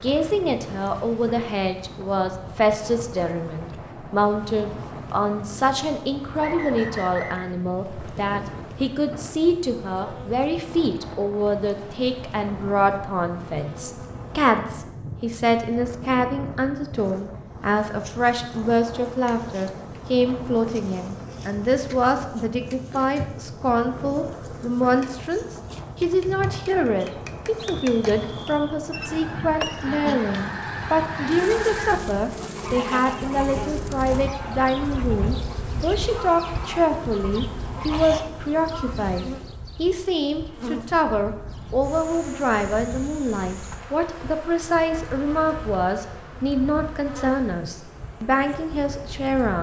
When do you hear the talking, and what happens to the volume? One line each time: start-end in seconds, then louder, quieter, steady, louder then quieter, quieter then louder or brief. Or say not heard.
0.0-49.5 steady.